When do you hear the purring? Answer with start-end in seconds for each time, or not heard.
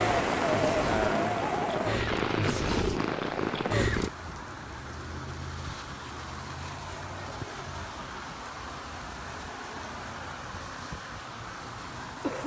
0.0-4.1.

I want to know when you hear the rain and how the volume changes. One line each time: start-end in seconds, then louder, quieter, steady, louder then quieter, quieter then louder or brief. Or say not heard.
0.0-12.4 quieter.